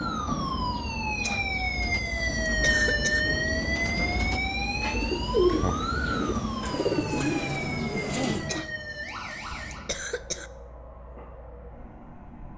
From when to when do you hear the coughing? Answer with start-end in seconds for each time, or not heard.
1.2-3.2, 8.4-10.5.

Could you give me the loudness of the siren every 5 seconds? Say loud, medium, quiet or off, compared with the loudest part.
loud, medium, off.